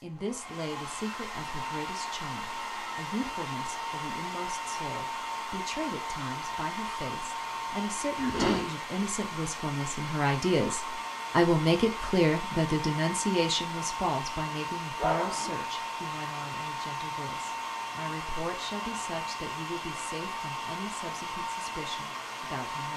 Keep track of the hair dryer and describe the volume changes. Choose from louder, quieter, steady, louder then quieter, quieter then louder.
steady.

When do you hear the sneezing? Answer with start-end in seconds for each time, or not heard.
8.2-8.7, 14.9-15.6.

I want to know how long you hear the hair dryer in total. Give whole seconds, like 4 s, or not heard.
23 s.